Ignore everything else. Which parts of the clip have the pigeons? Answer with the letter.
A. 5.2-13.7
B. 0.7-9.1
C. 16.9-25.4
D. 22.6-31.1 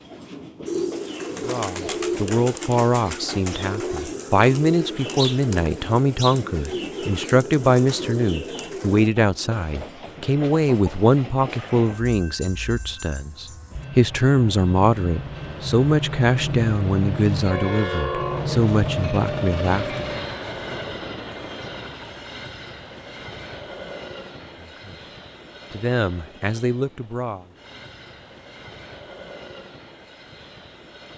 B.